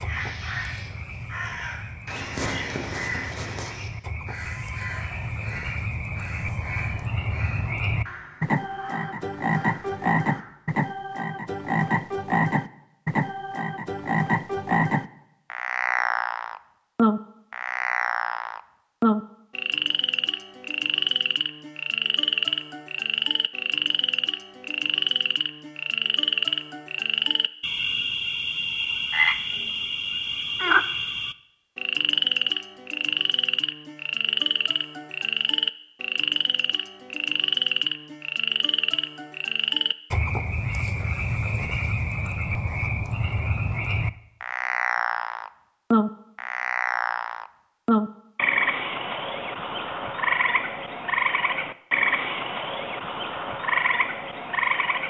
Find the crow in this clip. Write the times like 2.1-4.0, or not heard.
0.1-10.5.